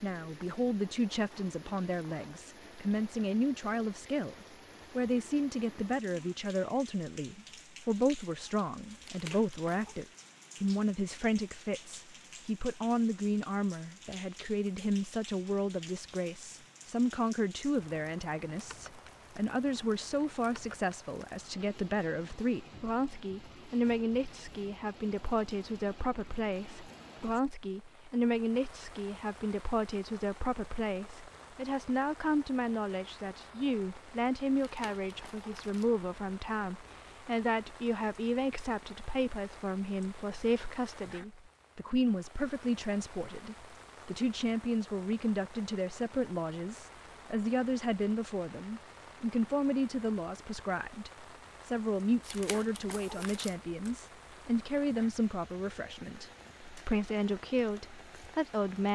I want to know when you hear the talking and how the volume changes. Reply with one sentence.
You can hear the talking from 0.0 to 58.9 s, at a steady volume.